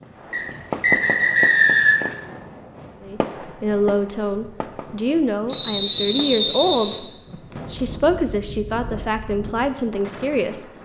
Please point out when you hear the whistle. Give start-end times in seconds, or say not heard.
0.3-2.1, 5.5-7.0.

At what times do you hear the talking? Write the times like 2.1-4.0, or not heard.
3.0-7.0, 7.7-10.7.